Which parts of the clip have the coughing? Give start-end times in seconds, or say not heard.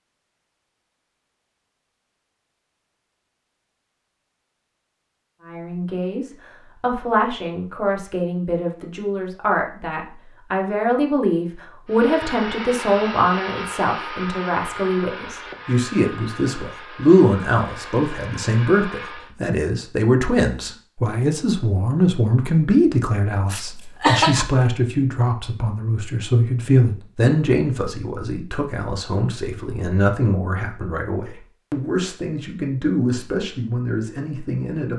23.5-24.4.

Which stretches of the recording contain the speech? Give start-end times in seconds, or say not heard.
5.4-34.9.